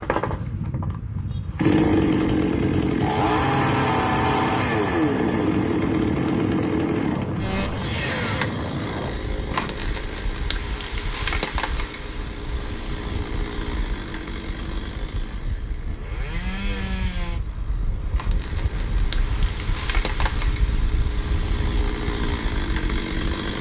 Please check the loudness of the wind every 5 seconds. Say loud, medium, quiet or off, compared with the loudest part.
loud, loud, medium, medium, medium.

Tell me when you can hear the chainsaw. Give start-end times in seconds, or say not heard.
0.0-23.5.